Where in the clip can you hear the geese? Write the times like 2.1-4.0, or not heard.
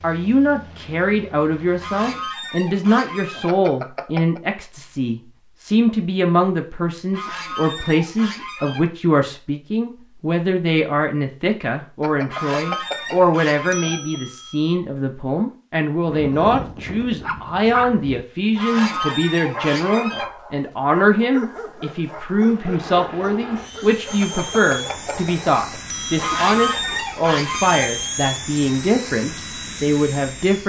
1.8-3.5, 7.1-8.8, 12.3-14.0, 18.6-20.2, 26.1-27.9.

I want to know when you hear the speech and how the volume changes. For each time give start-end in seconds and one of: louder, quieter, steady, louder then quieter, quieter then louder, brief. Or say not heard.
0.0-30.6 steady.